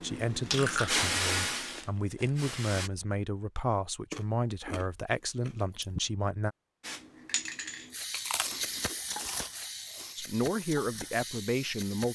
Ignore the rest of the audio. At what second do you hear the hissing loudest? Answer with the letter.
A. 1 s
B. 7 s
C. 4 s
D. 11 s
A.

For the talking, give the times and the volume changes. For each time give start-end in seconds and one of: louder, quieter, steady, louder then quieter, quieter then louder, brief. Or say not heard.
0.0-6.5 steady
10.2-12.0 brief.